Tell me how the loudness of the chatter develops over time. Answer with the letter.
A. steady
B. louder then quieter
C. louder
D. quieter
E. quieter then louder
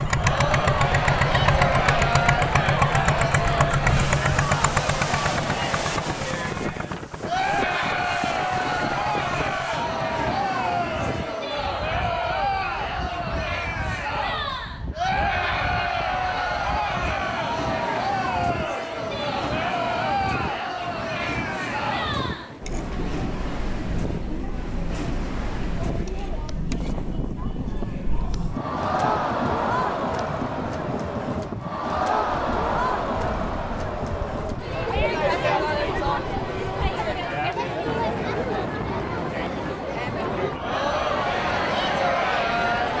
A.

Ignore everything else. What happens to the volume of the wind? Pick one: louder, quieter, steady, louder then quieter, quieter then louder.
steady.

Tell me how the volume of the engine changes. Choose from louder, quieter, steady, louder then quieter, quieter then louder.
quieter.